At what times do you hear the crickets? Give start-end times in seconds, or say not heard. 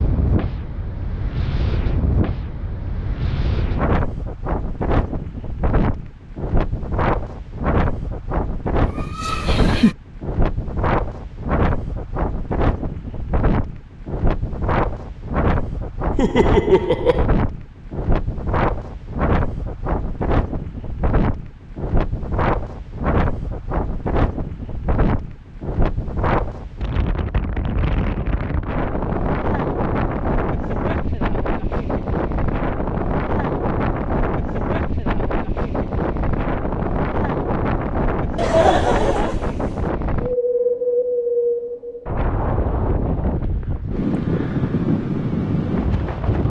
not heard.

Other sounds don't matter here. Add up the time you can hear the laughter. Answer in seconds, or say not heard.
4 s.